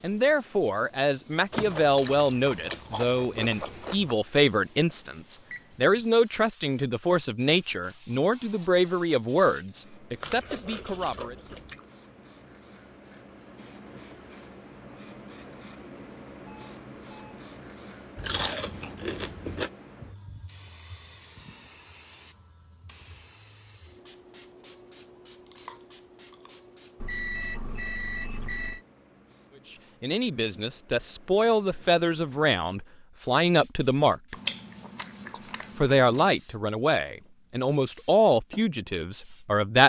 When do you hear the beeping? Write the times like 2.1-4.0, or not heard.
5.5-6.0, 16.4-17.4, 27.0-28.8.